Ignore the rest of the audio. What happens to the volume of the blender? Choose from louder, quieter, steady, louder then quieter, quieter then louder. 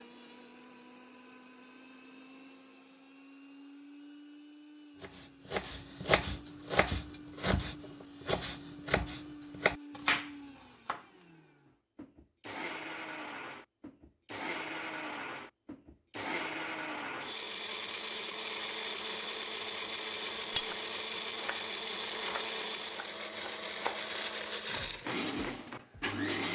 louder.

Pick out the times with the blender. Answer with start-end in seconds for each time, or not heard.
0.0-26.5.